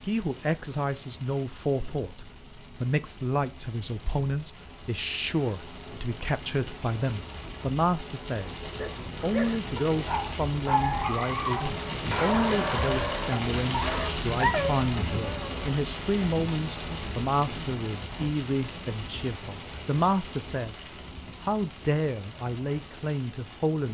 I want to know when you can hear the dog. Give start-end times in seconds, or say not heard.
8.6-15.7.